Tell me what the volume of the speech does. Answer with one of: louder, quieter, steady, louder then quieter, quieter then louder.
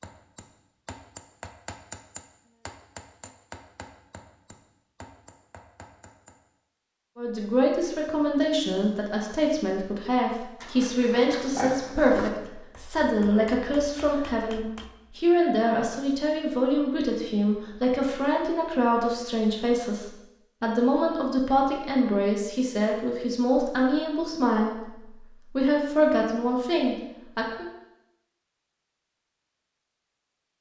steady.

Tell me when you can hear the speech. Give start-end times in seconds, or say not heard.
7.2-27.6.